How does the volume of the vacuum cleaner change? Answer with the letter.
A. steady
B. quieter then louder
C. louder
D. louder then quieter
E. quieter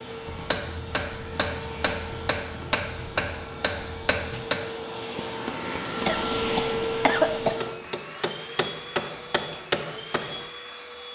D.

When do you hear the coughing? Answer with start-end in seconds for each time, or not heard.
6.0-7.5.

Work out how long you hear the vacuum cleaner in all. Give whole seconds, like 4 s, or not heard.
11 s.